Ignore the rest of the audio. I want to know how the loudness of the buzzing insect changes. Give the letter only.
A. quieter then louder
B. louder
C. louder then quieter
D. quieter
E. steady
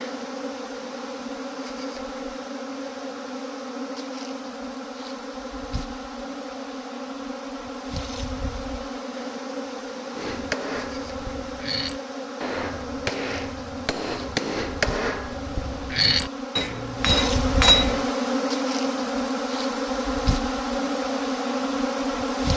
B.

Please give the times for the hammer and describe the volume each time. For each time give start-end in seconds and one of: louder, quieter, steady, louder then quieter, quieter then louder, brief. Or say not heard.
10.2-18.1 louder.